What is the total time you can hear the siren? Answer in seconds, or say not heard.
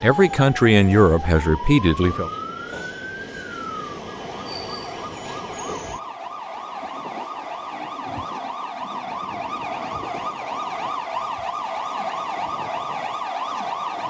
14 s.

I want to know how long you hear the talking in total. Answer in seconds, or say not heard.
2 s.